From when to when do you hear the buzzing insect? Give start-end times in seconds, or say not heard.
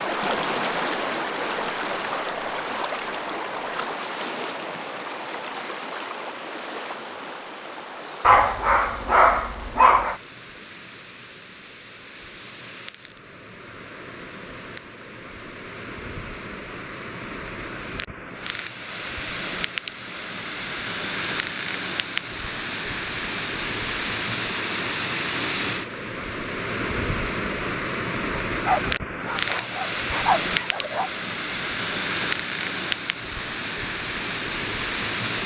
not heard.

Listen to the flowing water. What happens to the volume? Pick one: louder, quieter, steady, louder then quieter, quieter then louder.
quieter then louder.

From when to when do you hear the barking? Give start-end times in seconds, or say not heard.
8.2-10.2, 28.6-31.1.